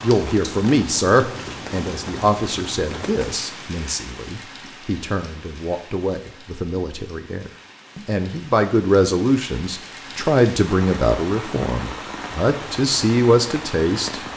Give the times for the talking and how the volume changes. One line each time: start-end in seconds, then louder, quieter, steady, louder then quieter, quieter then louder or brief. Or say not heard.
0.0-14.2 quieter then louder.